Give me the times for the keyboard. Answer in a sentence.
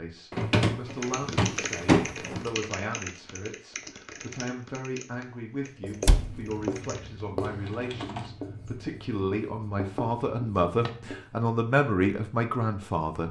The keyboard can be heard from 0.8 to 8.3 s.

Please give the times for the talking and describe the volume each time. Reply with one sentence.
You can hear the talking from 0.0 to 13.2 s, getting louder.